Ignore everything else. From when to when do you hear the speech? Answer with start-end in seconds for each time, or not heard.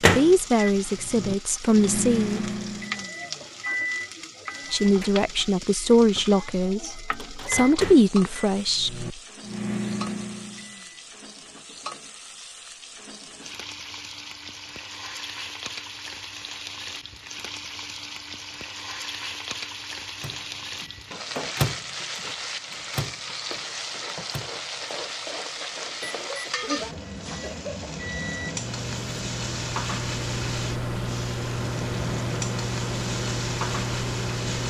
0.1-2.4, 4.7-9.1.